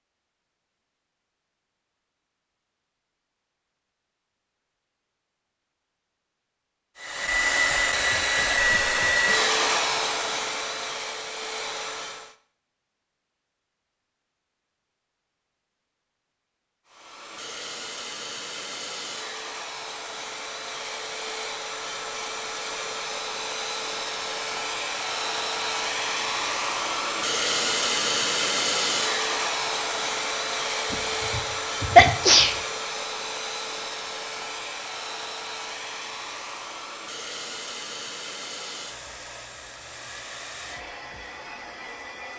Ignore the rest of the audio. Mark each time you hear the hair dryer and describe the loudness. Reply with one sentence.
You can hear the hair dryer from 7.0 to 12.3 s, getting quieter; and from 16.9 to 42.3 s, getting louder then quieter.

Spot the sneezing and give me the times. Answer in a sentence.
You can hear the sneezing from 30.9 to 32.6 s.